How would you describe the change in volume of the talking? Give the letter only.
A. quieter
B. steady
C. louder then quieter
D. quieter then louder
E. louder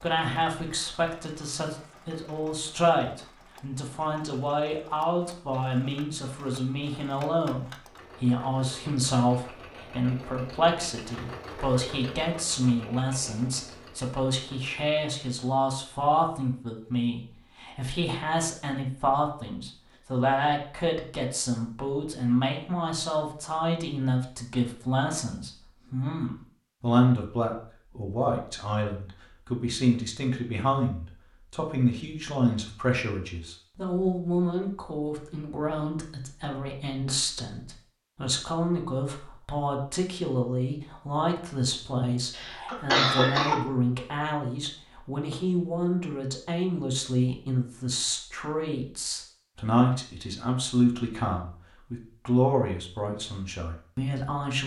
B.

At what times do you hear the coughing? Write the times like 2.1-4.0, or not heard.
42.3-43.5.